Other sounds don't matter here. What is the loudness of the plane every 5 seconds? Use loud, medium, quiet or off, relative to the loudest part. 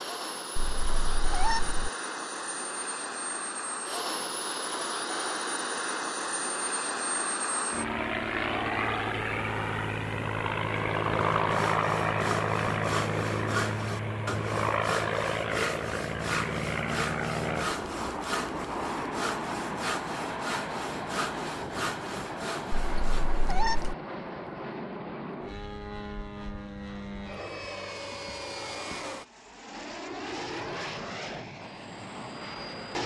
medium, loud, loud, loud, medium, medium, medium.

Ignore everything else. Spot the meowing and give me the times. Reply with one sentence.
The meowing can be heard from 0.6 to 1.9 s and from 22.8 to 23.9 s.